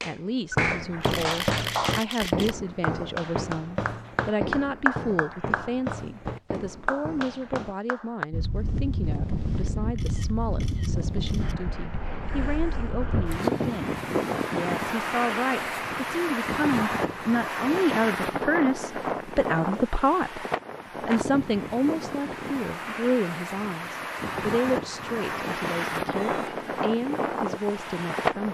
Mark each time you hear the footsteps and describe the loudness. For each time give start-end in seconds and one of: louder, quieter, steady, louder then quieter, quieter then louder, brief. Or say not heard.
0.6-7.8 quieter.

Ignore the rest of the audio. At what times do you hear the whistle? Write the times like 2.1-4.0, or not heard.
not heard.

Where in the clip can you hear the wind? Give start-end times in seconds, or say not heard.
8.3-28.4.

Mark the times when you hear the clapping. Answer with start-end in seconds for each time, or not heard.
0.0-8.2.